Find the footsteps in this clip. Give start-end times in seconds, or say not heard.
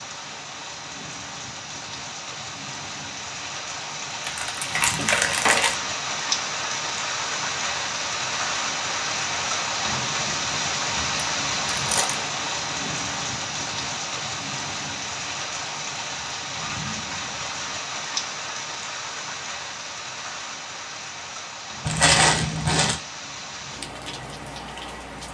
not heard.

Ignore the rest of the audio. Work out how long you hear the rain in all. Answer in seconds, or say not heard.
25 s.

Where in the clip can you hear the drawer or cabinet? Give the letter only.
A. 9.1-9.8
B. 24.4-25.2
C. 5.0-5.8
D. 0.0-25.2
C.